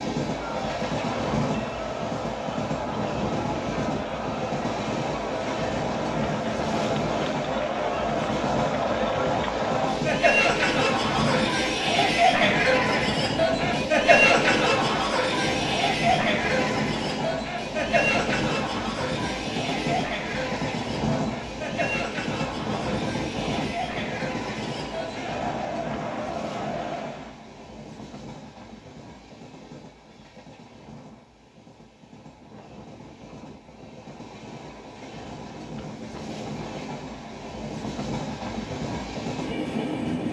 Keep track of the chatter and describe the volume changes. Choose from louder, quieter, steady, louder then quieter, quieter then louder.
louder then quieter.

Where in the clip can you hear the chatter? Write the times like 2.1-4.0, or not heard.
0.1-27.4.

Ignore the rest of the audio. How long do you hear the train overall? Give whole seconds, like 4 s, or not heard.
40 s.